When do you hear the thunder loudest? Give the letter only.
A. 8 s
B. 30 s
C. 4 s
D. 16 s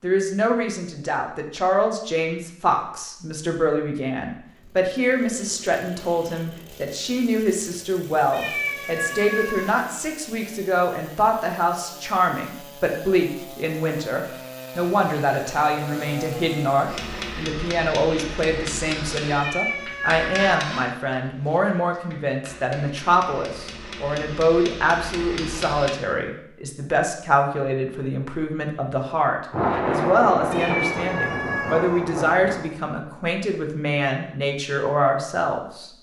B.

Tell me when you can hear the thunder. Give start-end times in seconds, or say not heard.
29.5-32.7.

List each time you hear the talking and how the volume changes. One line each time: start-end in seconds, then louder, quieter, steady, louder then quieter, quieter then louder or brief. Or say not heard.
0.0-35.9 steady.